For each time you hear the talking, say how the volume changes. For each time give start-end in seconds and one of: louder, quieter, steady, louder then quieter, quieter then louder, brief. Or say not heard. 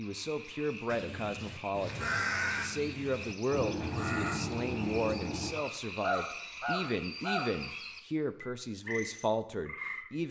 0.0-10.2 steady.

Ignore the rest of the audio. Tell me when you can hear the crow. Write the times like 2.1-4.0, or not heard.
0.8-7.5.